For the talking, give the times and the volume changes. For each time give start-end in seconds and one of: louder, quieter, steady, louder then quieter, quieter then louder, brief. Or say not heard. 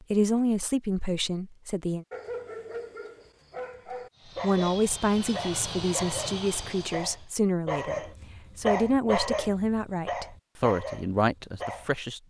0.0-2.0 brief
4.4-12.2 steady.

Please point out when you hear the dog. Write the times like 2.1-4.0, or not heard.
2.1-11.9.